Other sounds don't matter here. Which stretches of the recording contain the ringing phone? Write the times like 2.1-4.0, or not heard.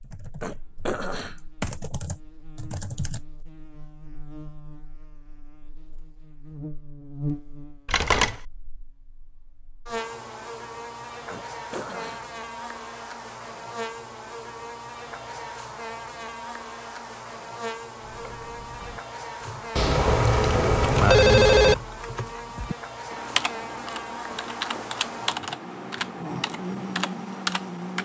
7.8-8.4, 19.8-21.8.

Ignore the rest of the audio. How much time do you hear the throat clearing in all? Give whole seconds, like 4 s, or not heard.
3 s.